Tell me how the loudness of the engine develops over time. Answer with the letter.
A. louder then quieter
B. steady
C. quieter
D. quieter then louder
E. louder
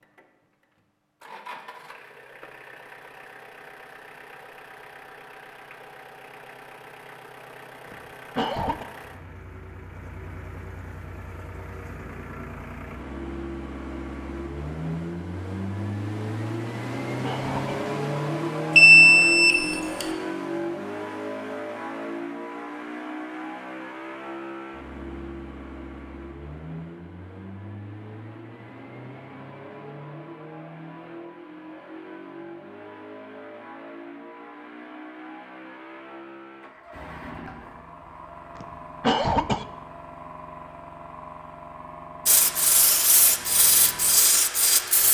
A.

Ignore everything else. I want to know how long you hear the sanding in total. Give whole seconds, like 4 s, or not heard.
3 s.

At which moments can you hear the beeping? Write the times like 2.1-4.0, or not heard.
18.8-20.1.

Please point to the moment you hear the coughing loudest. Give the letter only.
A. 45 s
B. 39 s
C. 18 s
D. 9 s
B.